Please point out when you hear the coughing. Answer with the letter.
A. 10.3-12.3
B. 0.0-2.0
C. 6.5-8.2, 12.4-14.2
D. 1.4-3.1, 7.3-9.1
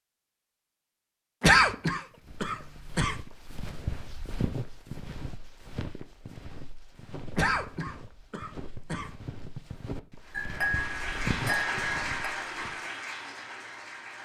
D.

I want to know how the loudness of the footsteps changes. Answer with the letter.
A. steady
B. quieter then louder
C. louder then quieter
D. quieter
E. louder
B.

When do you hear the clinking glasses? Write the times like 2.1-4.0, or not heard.
10.3-12.3.